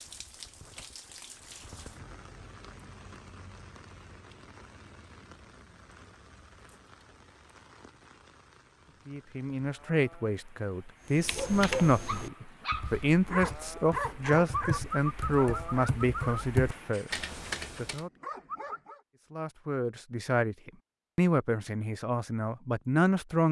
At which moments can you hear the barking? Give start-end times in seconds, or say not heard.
11.2-19.0.